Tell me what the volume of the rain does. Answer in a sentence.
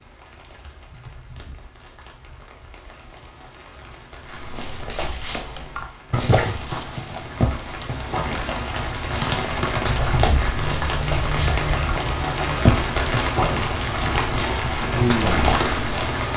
The volume of the rain goes up.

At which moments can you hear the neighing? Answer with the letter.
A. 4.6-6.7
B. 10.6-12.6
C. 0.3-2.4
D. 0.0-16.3
B.